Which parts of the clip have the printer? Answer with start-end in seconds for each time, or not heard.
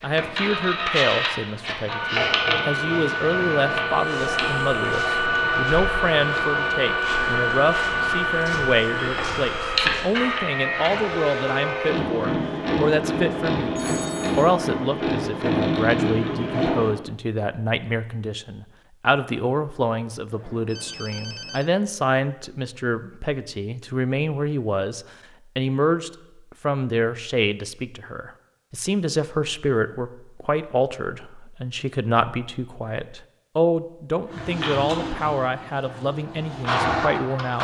0.0-16.9, 34.2-37.6.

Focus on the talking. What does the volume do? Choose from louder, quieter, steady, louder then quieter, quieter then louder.
steady.